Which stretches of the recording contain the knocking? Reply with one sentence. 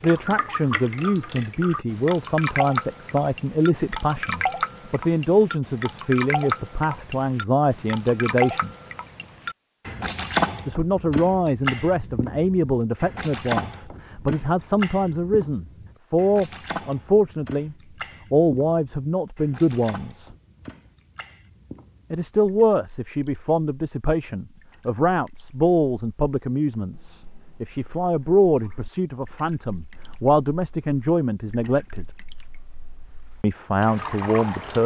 You can't hear the knocking here.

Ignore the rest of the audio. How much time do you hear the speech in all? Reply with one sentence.
You can hear the speech for 30 seconds altogether.